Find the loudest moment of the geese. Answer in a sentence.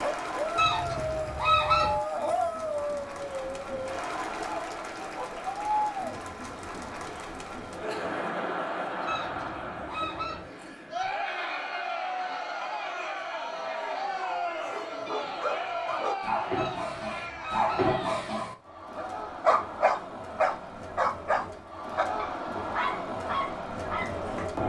The volume of the geese peaks at 2 seconds.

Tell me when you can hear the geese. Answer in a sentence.
The geese can be heard from 0.6 to 2.0 s, from 9.1 to 10.4 s and from 16.6 to 18.0 s.